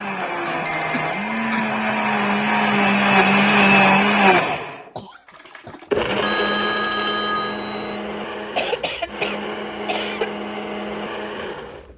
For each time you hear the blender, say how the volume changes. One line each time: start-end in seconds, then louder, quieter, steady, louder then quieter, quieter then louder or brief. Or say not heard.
0.0-11.9 louder then quieter.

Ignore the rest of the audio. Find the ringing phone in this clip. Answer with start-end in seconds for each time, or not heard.
0.6-1.3, 6.2-8.0.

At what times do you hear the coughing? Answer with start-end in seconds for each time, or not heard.
0.5-1.7, 5.0-5.8, 8.6-10.3.